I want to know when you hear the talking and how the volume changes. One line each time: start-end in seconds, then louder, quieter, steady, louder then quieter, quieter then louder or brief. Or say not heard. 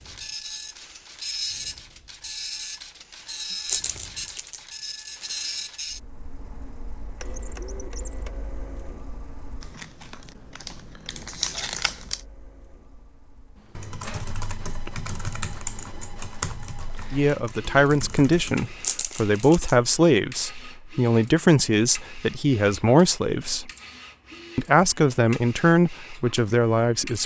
17.1-23.7 steady
24.6-27.2 brief.